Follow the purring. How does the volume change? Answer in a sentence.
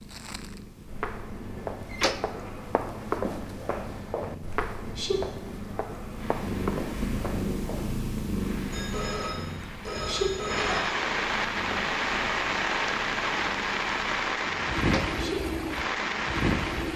The volume of the purring goes up, then down.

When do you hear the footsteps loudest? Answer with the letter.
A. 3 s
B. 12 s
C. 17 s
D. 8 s
A.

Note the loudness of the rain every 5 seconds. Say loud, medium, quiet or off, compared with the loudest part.
off, quiet, loud, loud.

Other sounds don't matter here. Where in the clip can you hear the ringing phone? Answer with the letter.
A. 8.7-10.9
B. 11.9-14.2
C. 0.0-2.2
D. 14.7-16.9
A.